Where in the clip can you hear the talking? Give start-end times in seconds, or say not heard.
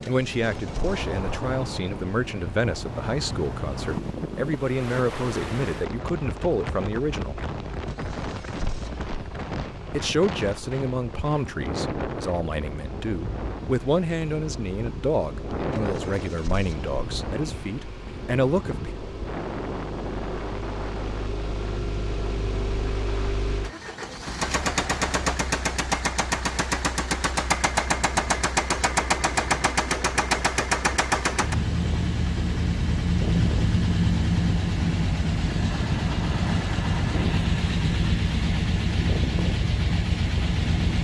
0.1-7.4, 9.9-19.0.